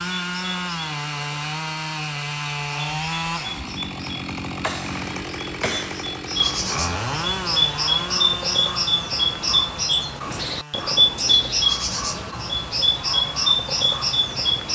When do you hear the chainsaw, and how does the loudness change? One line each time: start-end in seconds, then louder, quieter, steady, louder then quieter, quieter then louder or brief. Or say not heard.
0.0-14.7 quieter.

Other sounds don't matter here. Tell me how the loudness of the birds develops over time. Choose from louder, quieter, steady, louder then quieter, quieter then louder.
louder.